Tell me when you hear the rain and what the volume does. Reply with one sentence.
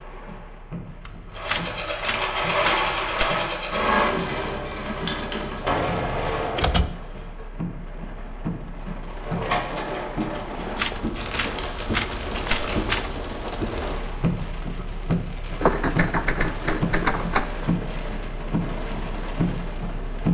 The rain can be heard from 0.0 to 20.2 s, getting louder.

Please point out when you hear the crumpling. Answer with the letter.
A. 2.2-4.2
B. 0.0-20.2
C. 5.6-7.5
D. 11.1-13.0
D.